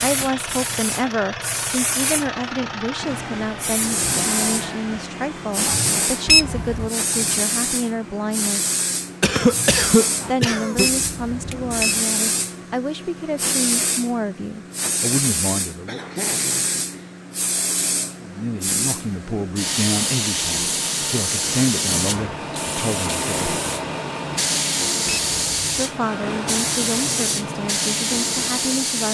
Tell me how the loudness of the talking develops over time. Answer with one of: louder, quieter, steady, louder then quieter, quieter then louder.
steady.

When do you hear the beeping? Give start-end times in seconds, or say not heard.
6.2-6.9, 10.8-12.0, 25.1-25.6.